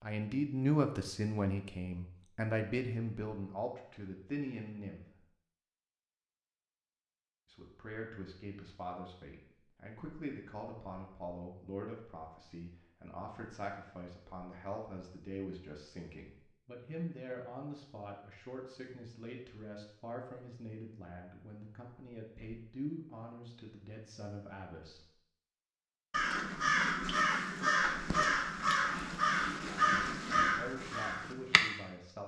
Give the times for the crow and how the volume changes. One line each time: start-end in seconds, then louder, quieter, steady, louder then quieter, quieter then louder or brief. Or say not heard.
26.1-31.6 steady.